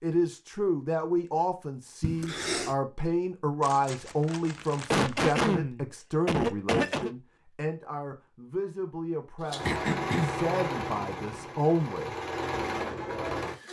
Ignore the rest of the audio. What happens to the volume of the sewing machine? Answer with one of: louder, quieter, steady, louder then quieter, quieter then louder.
quieter then louder.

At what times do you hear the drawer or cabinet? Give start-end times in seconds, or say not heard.
not heard.